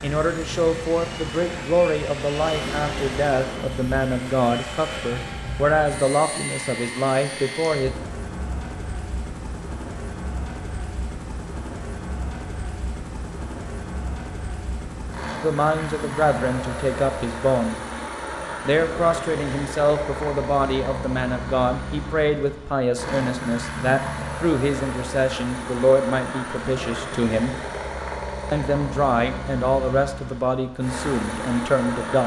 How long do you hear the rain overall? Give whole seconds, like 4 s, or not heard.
not heard.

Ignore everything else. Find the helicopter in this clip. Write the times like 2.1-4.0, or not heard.
0.0-32.2.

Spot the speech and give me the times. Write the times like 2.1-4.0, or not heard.
0.0-7.9, 15.4-17.8, 18.6-27.6, 28.5-32.2.